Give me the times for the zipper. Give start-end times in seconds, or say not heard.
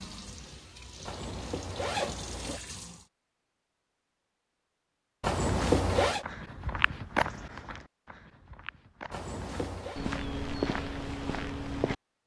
1.1-2.6, 5.2-6.2, 9.1-10.0.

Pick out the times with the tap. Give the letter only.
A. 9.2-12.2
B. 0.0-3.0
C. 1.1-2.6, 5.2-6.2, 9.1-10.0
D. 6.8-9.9
B.